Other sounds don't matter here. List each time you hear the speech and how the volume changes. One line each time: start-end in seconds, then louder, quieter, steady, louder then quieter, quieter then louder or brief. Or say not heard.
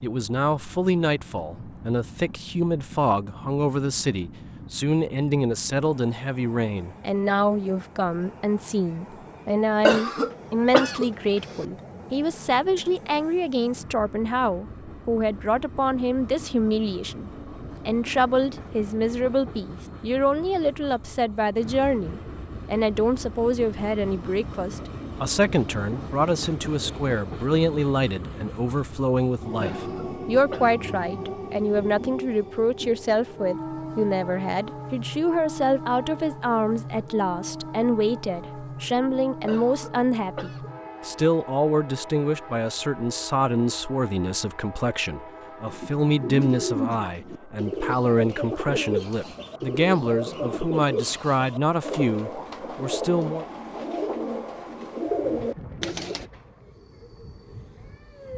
0.0-53.5 steady.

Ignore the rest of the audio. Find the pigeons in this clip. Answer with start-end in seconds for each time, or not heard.
45.6-56.3.